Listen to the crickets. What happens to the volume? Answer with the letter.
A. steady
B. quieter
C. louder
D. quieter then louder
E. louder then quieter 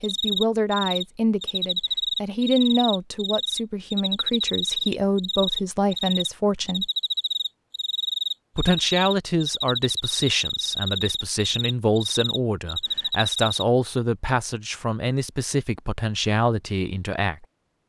A.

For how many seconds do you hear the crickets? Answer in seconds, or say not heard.
14 s.